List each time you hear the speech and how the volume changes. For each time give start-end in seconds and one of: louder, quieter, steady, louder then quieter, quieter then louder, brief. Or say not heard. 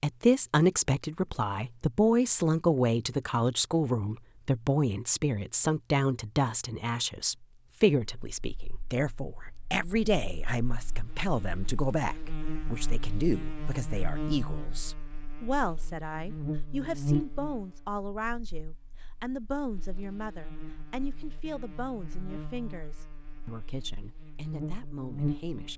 0.0-25.7 quieter.